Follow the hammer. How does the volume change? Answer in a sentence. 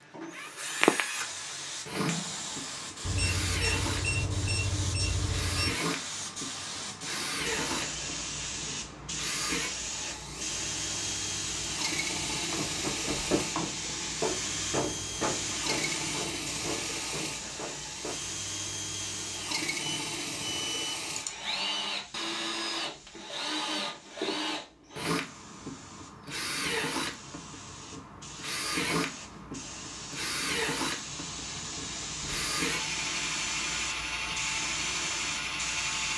The volume of the hammer goes down.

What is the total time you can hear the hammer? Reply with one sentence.
The hammer can be heard for 6 seconds in total.